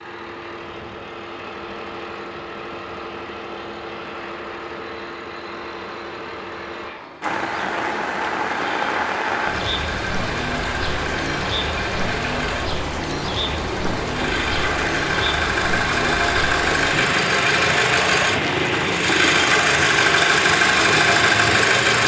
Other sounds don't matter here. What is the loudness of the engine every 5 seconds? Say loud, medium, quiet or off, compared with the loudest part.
quiet, quiet, medium, loud, loud.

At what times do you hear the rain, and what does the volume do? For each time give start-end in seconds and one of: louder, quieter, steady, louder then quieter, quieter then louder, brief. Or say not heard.
7.2-22.0 steady.